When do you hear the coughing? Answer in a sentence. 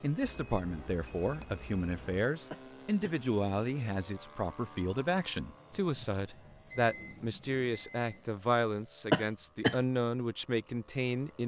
You can hear the coughing from 2.5 to 3.1 s and from 9.1 to 9.8 s.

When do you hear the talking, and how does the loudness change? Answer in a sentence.
You can hear the talking from 0.0 to 11.4 s, at a steady volume.